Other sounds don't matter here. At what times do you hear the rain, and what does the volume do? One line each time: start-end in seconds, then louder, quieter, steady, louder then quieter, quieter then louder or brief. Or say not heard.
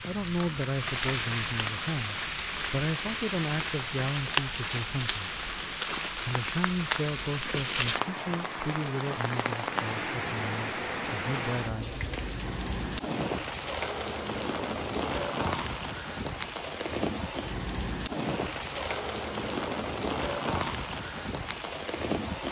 0.0-22.4 steady.